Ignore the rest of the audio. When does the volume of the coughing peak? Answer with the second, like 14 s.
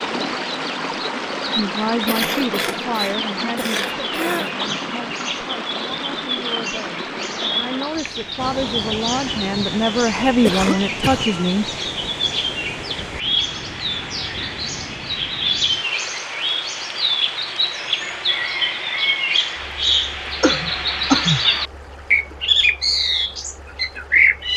21 s.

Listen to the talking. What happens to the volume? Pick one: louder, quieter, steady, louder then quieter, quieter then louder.
quieter then louder.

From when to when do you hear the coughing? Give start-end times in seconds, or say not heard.
2.0-4.5, 10.4-11.3, 20.4-21.4.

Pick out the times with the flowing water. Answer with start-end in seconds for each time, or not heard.
0.0-24.5.